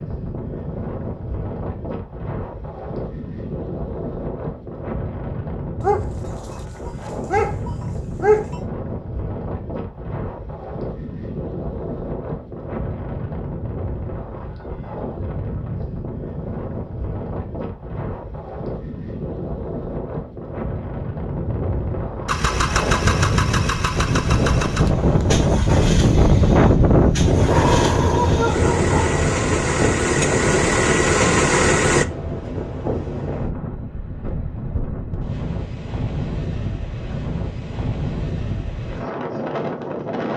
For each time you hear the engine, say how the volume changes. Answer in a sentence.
You can hear the engine from 22.2 to 32.0 s, getting quieter then louder.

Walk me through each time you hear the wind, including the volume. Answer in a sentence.
The wind can be heard from 0.0 to 40.3 s, getting louder then quieter.